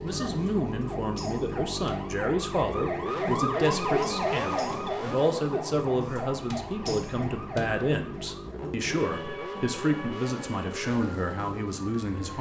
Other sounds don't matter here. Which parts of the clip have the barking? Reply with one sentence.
The barking can't be heard in this clip.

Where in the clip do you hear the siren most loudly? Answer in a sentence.
The loudest moment of the siren is at 4 seconds.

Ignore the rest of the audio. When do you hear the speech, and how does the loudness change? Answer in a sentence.
The speech can be heard from 0.0 to 12.3 s, at a steady volume.